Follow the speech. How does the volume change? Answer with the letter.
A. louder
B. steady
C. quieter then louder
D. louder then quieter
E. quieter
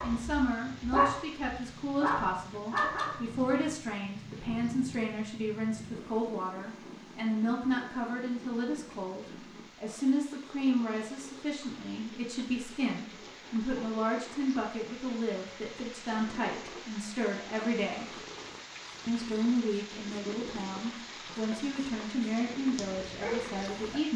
B.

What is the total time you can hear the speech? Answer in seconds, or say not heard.
23 s.